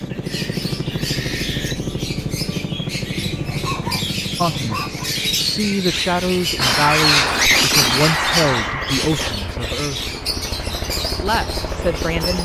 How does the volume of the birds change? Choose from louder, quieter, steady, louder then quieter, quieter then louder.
louder then quieter.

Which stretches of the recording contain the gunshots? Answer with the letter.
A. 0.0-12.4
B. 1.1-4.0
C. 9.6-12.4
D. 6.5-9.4
D.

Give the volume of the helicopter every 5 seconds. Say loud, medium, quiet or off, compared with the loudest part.
loud, medium, loud.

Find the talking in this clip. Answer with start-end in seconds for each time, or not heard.
4.3-10.2, 11.2-12.4.